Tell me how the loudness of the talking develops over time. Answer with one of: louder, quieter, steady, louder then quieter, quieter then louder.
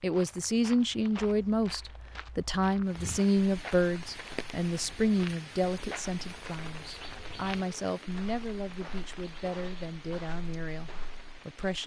quieter.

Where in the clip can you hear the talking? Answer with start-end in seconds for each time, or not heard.
0.0-11.8.